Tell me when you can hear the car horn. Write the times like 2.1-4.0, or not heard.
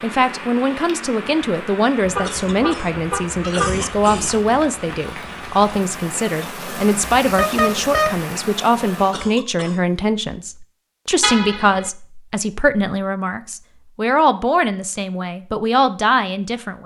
2.0-3.9, 7.2-8.2, 11.2-11.9.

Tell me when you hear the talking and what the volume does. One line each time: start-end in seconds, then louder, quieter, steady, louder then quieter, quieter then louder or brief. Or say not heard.
0.0-16.8 steady.